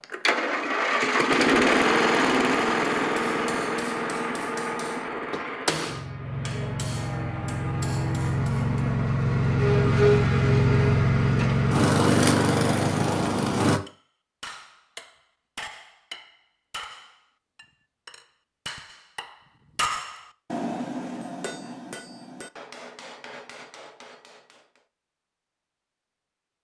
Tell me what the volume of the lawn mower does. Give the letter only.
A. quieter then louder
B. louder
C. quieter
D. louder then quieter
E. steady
A.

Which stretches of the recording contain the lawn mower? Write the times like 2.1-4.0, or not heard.
0.0-13.8.